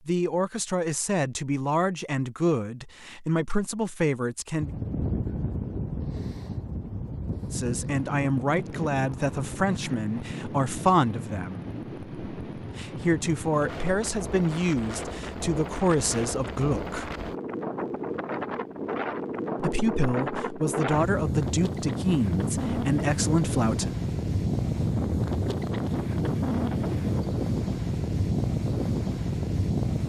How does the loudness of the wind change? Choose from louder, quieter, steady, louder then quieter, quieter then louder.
louder.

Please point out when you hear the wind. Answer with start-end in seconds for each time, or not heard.
4.6-30.0.